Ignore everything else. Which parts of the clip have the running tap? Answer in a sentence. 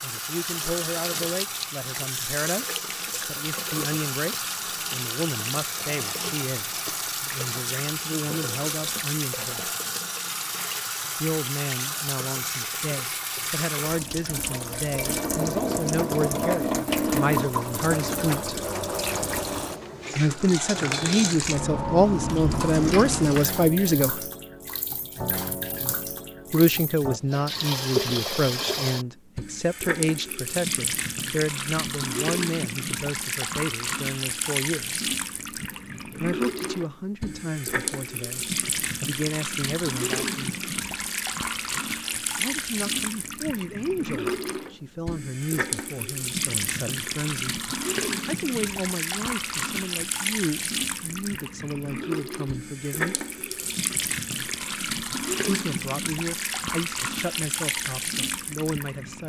The running tap can be heard from 0.0 to 59.2 s.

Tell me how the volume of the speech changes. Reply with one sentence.
The volume of the speech goes up, then down.